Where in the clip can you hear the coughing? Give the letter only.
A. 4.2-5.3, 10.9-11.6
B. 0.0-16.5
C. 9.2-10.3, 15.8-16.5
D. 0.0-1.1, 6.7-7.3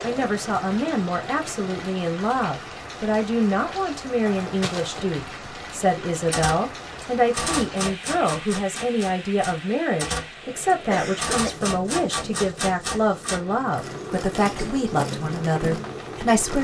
A.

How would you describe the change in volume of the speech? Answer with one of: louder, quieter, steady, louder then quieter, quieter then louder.
steady.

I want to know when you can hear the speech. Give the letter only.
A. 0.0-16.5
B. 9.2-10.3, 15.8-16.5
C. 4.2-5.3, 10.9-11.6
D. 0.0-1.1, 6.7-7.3
A.